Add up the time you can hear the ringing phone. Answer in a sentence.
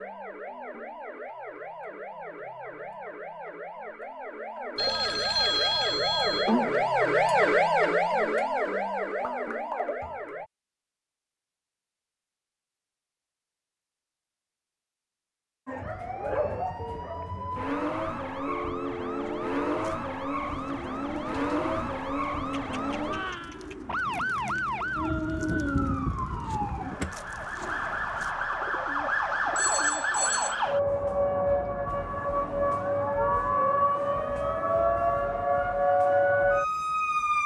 You can hear the ringing phone for 4 seconds altogether.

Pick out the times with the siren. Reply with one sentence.
You can hear the siren from 0.0 to 10.5 s and from 15.7 to 37.4 s.